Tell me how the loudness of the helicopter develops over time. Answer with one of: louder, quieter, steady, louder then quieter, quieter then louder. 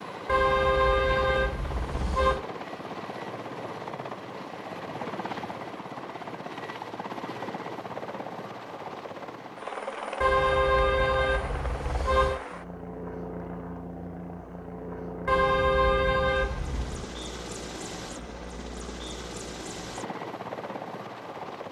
steady.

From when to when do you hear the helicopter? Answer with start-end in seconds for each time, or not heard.
0.0-21.6.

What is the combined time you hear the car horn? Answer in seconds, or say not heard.
6 s.